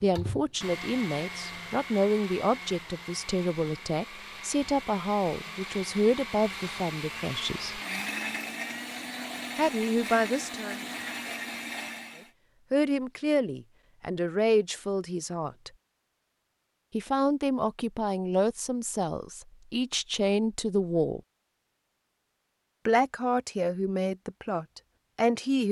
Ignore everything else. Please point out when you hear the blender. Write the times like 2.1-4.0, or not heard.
0.0-12.3.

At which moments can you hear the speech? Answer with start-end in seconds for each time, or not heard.
0.0-7.8, 9.6-10.8, 12.7-15.7, 16.9-21.2, 22.9-25.6.